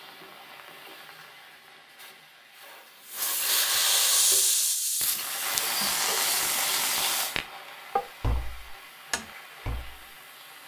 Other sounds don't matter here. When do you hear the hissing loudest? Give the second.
4 s.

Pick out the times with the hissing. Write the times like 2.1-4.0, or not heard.
0.0-10.6.